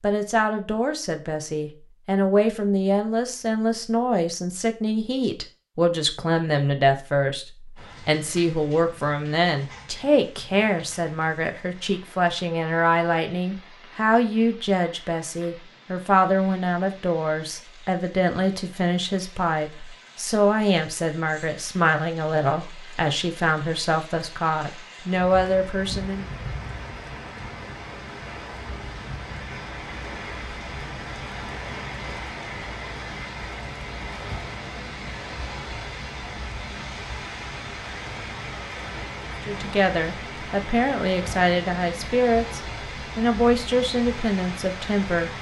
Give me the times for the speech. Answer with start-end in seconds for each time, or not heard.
0.0-26.3, 39.5-45.3.